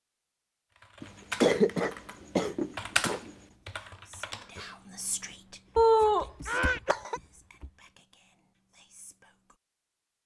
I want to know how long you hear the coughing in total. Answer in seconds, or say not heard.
4 s.